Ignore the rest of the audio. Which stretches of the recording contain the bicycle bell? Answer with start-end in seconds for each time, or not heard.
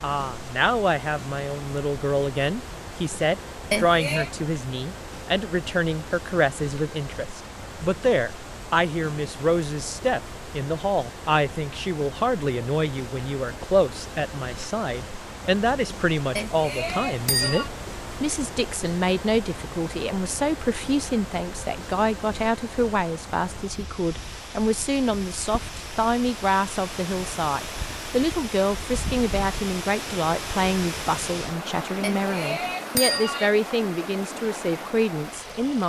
3.7-4.3, 16.4-17.7, 32.0-33.5.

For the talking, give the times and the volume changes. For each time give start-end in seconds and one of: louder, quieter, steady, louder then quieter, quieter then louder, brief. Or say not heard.
0.0-35.8 steady.